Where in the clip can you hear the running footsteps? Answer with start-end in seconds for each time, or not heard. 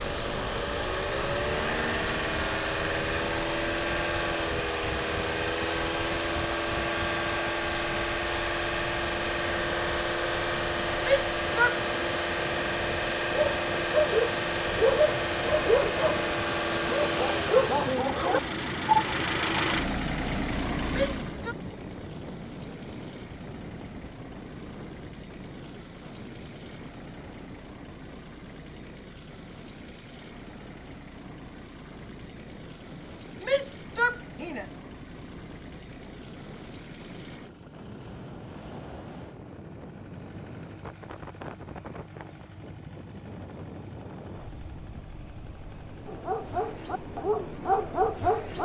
not heard.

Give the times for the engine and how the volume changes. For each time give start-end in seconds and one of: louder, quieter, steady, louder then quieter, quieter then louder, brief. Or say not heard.
0.0-48.5 quieter.